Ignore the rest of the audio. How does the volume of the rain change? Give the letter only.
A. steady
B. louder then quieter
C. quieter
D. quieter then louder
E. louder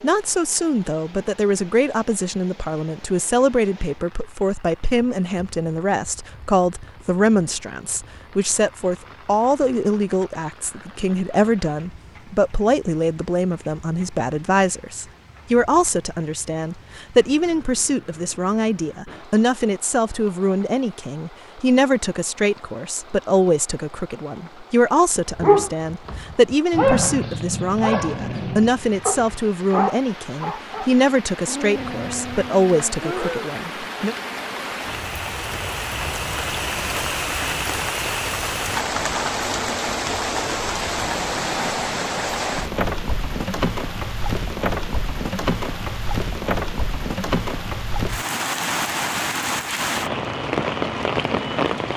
E.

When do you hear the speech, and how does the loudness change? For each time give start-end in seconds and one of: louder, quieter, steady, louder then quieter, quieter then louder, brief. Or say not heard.
0.0-34.1 steady.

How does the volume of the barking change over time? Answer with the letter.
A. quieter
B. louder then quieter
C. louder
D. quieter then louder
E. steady
A.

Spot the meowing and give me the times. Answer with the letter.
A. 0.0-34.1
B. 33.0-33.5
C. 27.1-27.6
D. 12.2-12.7
B.